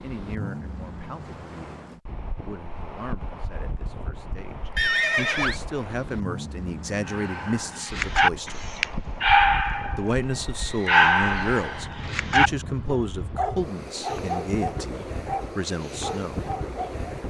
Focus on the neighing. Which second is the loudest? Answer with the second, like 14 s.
5 s.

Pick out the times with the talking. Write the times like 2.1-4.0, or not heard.
0.0-8.6, 9.9-16.4.